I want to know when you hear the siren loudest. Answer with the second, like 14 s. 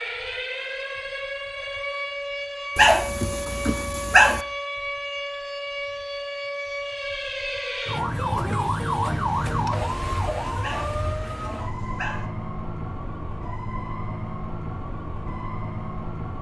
9 s.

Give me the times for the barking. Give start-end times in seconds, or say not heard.
2.8-4.5, 10.6-12.2.